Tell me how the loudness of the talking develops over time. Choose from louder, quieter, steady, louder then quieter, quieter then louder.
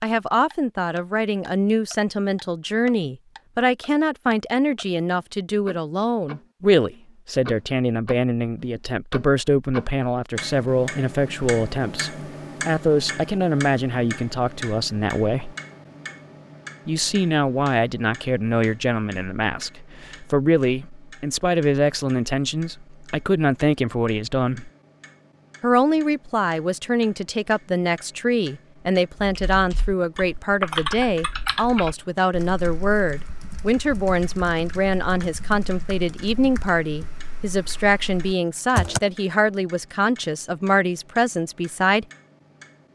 steady.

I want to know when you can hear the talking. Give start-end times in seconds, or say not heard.
0.0-15.6, 16.9-24.7, 25.6-42.0.